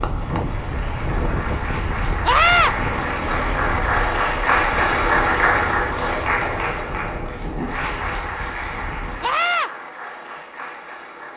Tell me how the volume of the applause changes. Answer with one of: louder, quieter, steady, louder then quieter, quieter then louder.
louder then quieter.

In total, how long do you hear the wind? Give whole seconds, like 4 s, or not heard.
9 s.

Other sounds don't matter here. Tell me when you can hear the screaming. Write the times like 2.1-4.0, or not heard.
2.2-2.8, 9.2-9.7.